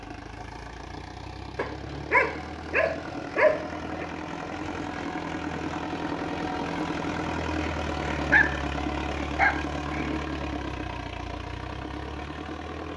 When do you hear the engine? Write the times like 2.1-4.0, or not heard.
0.0-12.9.